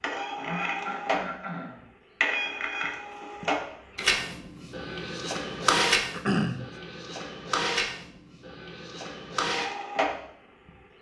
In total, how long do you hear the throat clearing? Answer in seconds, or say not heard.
2 s.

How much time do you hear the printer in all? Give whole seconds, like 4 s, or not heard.
10 s.